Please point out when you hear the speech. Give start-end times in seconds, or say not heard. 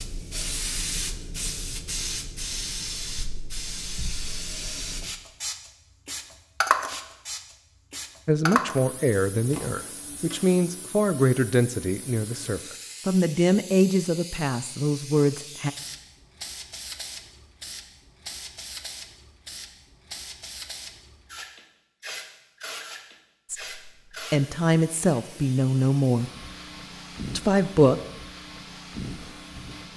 8.2-15.7, 23.5-26.3, 27.4-27.9.